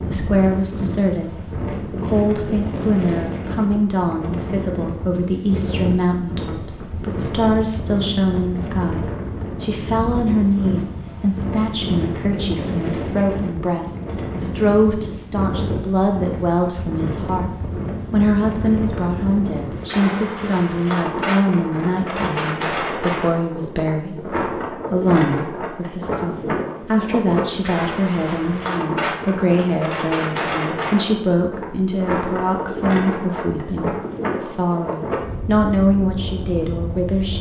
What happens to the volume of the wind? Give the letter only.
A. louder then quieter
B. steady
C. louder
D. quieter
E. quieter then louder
B.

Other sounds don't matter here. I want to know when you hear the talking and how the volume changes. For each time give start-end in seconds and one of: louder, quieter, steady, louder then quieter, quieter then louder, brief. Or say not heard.
0.1-17.5 steady
18.1-37.3 steady.